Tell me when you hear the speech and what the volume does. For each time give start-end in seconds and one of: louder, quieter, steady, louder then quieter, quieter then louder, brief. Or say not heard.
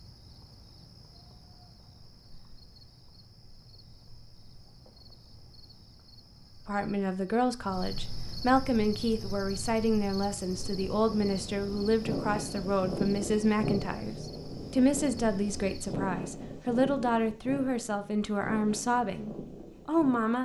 6.7-20.4 steady.